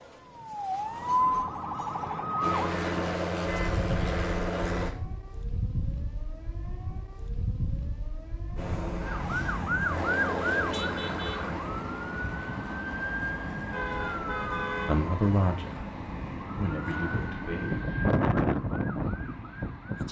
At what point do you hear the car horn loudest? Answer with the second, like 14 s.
15 s.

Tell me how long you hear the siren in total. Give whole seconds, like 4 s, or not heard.
20 s.